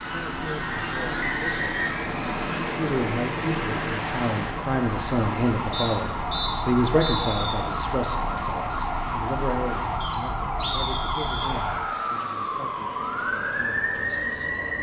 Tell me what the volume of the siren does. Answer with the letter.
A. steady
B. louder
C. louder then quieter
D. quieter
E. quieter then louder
B.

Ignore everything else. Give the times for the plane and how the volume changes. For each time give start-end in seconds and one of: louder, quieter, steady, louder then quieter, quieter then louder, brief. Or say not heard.
0.0-14.7 quieter.